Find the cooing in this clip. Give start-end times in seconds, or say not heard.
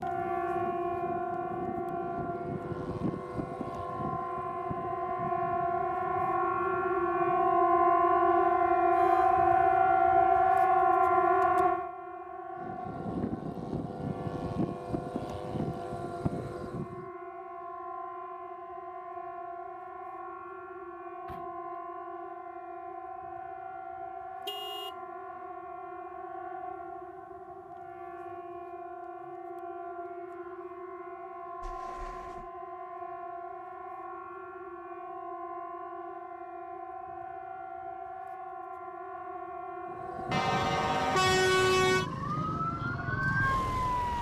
not heard.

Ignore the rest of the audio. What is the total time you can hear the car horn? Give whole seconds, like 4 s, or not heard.
3 s.